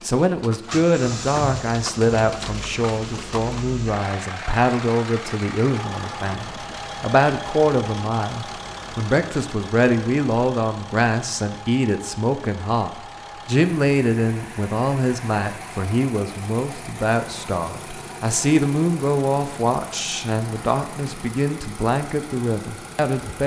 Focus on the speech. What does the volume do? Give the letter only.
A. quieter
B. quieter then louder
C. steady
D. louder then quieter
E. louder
C.